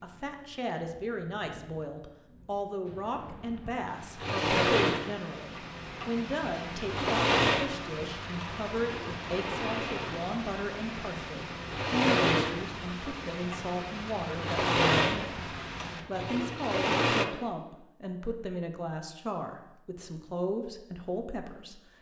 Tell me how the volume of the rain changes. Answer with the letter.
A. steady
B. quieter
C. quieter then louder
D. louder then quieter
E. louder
E.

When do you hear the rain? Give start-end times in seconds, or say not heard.
0.0-16.1.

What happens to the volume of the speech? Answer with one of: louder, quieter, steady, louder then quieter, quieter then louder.
steady.